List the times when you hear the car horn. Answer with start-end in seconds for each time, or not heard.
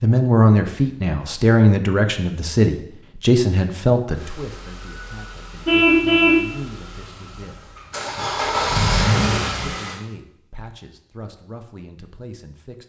5.7-6.5.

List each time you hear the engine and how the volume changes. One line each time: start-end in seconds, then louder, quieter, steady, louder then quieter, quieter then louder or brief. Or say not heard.
4.1-10.0 louder.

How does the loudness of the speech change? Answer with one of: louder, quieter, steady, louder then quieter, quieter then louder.
quieter.